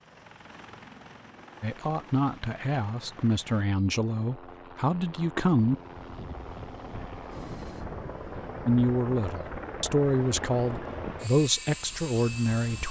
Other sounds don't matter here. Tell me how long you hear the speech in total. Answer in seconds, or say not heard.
8 s.